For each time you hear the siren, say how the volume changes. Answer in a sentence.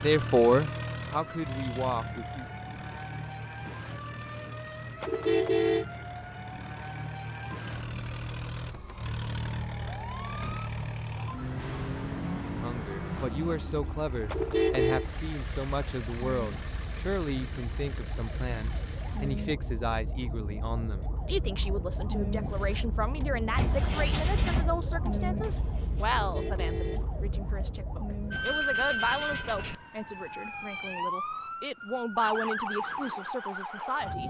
You can hear the siren from 0.0 to 34.2 s, getting louder.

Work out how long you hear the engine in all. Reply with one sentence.
The engine can be heard for 23 seconds in total.